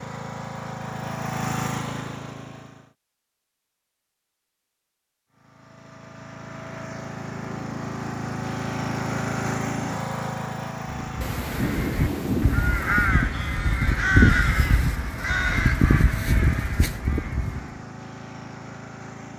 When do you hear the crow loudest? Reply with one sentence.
The loudest moment of the crow is at 14 seconds.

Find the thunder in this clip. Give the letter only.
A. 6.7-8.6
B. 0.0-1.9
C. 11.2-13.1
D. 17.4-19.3
C.